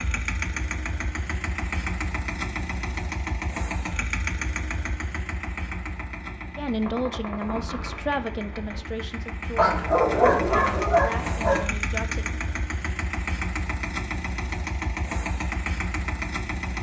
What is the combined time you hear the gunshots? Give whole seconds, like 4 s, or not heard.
2 s.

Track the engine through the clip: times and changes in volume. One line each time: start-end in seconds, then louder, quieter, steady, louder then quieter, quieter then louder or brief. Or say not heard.
0.0-16.7 quieter then louder.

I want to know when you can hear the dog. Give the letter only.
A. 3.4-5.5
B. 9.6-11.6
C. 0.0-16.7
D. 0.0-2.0
B.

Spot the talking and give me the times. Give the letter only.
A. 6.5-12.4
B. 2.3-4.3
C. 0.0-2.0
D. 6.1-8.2
A.